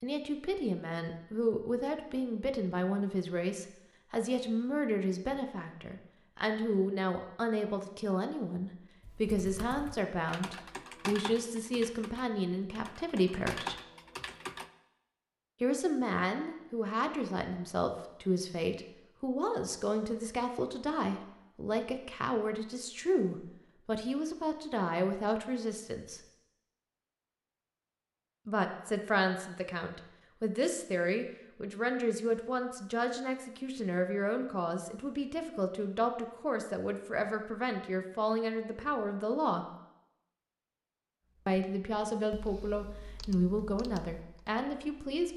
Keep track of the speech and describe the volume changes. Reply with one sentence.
The volume of the speech stays about the same.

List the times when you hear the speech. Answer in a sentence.
You can hear the speech from 0.0 to 13.8 s, from 15.6 to 26.2 s, from 28.4 to 39.6 s and from 41.5 to 45.3 s.